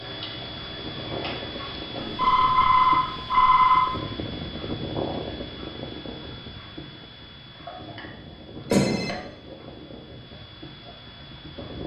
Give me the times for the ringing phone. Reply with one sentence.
The ringing phone can be heard from 1.9 to 3.9 s and from 8.7 to 9.2 s.